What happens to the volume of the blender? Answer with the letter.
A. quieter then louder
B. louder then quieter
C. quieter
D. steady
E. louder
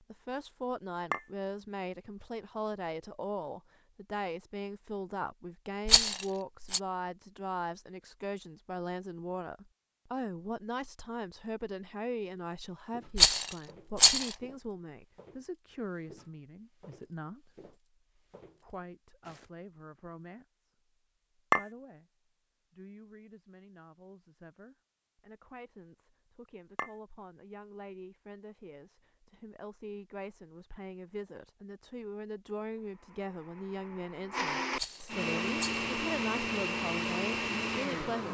E.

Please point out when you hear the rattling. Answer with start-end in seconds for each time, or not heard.
5.8-6.8, 13.2-14.3, 34.8-35.9.